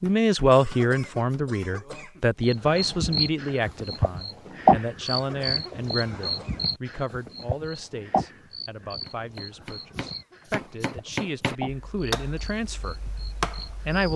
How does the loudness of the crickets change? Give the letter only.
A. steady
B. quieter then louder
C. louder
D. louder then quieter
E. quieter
E.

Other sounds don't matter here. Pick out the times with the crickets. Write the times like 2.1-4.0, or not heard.
2.5-14.1.